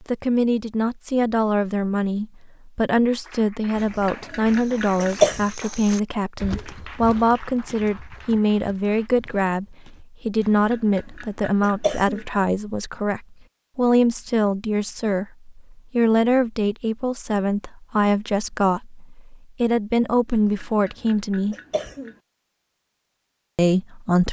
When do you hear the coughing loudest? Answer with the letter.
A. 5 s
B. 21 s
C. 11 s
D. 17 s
A.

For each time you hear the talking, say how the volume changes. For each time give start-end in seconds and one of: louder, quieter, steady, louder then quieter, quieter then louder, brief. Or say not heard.
0.0-21.6 steady
23.6-24.2 brief.